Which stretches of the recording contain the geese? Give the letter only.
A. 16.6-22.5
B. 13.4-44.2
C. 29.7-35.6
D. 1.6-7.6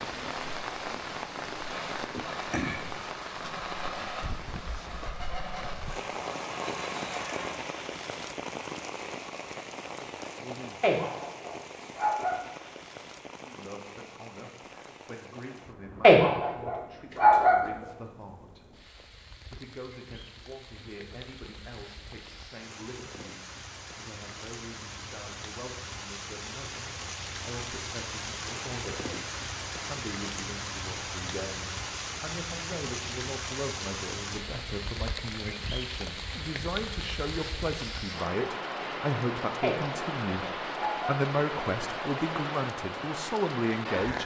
D.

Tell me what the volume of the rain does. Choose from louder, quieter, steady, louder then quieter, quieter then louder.
quieter then louder.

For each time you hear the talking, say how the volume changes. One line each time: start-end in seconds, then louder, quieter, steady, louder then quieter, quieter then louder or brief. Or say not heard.
13.4-44.2 louder.